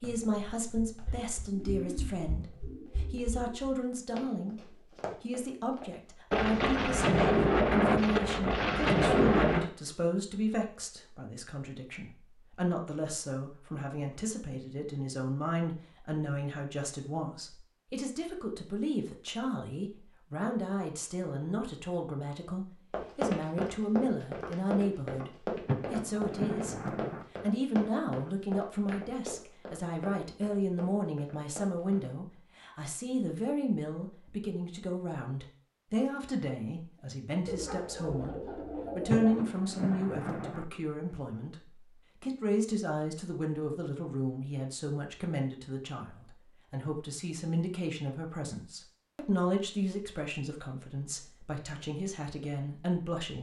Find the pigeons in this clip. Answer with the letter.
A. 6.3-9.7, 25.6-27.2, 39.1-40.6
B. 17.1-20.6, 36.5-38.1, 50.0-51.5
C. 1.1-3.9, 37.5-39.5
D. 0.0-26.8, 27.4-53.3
C.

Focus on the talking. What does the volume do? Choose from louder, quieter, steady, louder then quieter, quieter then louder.
steady.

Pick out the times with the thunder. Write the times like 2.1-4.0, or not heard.
6.3-9.7, 25.6-27.2, 39.1-40.6.